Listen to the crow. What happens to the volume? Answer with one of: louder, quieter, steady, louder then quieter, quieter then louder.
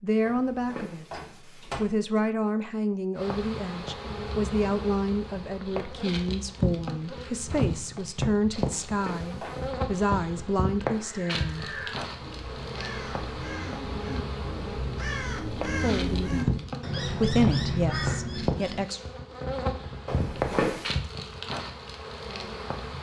louder.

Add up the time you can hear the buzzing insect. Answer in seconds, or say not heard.
20 s.